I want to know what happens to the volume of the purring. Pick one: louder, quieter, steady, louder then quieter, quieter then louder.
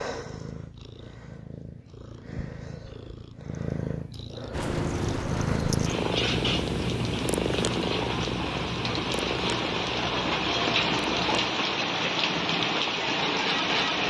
louder then quieter.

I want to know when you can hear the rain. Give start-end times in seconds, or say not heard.
4.5-14.0.